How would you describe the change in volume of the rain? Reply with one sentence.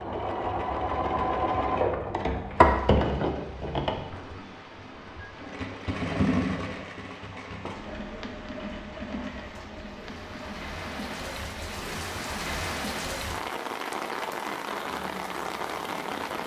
The volume of the rain goes up.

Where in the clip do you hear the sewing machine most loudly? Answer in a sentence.
The volume of the sewing machine peaks at 3 seconds.